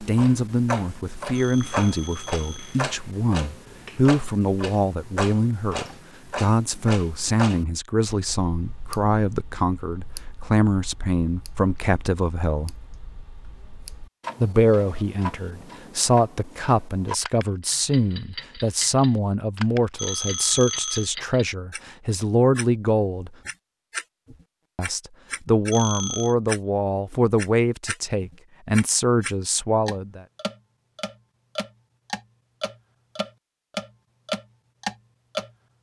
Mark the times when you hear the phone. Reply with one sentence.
You can hear the phone from 1.4 to 2.9 s, from 19.9 to 21.1 s and from 25.7 to 26.4 s.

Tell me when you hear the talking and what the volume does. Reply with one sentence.
The talking can be heard from 0.0 to 12.8 s, at a steady volume; from 14.4 to 23.3 s, at a steady volume; and from 24.8 to 30.2 s, at a steady volume.